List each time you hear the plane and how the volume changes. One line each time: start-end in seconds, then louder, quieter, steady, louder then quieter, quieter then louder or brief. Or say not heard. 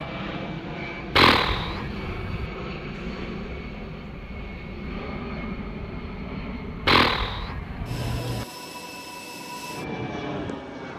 0.0-10.9 steady.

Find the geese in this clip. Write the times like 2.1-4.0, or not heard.
1.1-2.5, 6.8-8.0.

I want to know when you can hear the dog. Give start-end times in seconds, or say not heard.
not heard.